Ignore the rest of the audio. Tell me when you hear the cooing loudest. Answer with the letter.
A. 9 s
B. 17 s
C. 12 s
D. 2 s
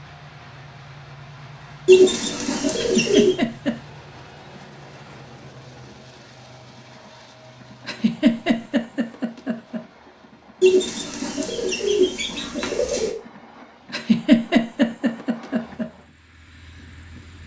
D.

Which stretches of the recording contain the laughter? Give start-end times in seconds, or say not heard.
2.8-3.8, 7.8-9.8, 13.9-15.8.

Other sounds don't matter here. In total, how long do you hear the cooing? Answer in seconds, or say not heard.
4 s.